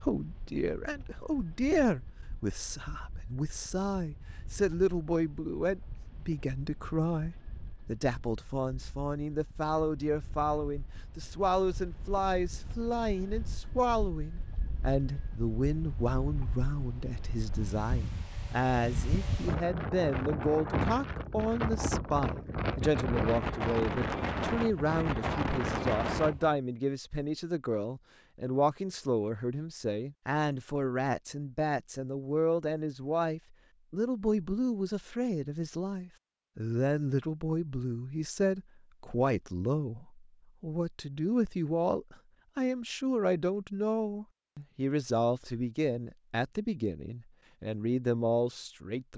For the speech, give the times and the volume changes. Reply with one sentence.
The speech can be heard from 0.0 to 49.1 s, at a steady volume.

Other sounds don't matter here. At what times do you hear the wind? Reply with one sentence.
You can hear the wind from 0.0 to 26.6 s.